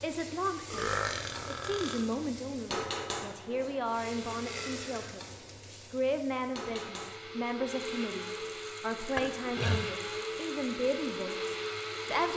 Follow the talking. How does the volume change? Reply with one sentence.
The loudness of the talking stays about the same.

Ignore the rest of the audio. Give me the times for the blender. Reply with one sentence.
You can hear the blender from 3.2 to 4.9 s and from 6.7 to 12.3 s.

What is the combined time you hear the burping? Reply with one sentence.
You can hear the burping for 3 seconds altogether.